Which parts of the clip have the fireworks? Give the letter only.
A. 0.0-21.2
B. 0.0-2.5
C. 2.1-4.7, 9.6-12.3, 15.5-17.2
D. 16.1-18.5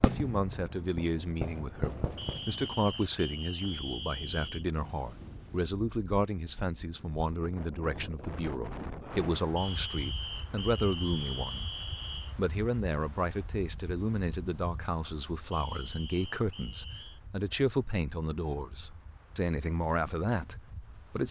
B.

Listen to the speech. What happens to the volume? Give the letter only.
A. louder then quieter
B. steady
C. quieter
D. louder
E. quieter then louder
B.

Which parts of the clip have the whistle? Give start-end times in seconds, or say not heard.
2.1-4.7, 9.6-12.3, 15.5-17.2.